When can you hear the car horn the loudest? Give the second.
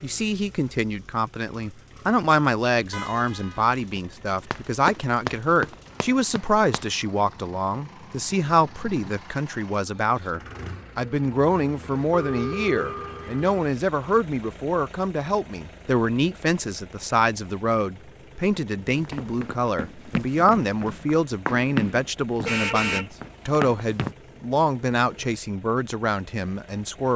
23 s.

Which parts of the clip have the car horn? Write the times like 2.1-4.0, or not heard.
2.9-4.0, 12.1-13.6, 22.4-23.1.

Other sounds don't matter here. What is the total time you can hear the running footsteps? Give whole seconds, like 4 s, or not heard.
8 s.